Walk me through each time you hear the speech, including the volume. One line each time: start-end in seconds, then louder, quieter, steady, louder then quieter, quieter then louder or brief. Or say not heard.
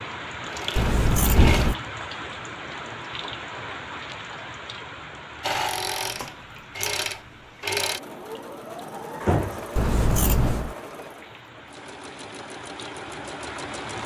not heard.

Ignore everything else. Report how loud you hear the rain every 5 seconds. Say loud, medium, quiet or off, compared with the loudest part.
loud, medium, medium.